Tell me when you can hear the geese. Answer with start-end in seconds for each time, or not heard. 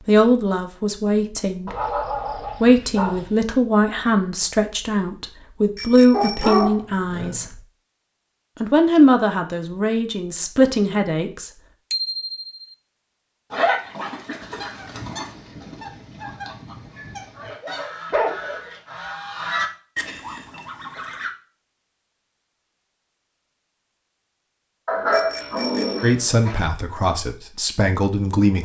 14.4-21.3.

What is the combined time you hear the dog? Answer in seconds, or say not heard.
8 s.